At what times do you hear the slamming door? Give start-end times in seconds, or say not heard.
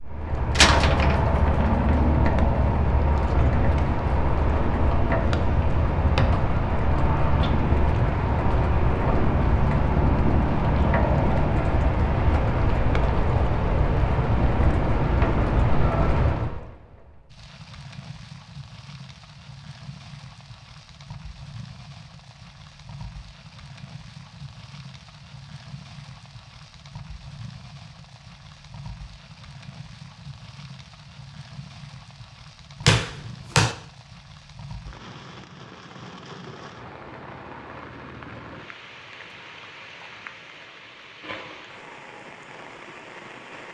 0.6-1.9, 32.9-33.8.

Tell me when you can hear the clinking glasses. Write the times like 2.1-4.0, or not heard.
not heard.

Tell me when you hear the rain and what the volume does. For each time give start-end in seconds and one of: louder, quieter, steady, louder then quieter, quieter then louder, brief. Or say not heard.
0.0-43.7 quieter.